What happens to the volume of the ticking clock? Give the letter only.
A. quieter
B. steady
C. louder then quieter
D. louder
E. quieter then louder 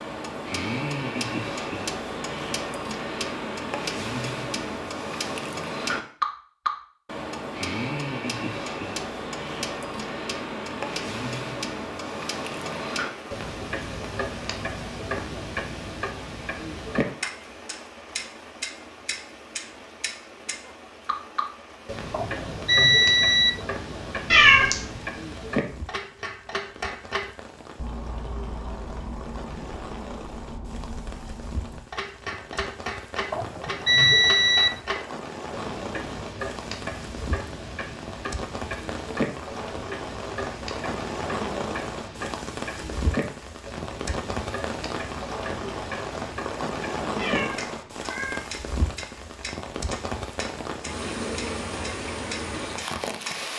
A.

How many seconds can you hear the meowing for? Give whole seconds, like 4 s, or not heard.
2 s.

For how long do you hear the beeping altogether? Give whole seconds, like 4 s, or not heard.
3 s.